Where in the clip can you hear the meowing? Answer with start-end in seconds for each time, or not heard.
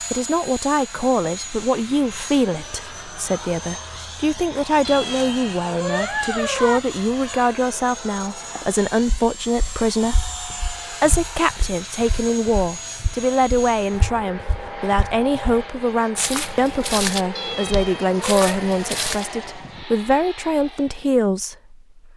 4.8-6.8, 17.4-18.6.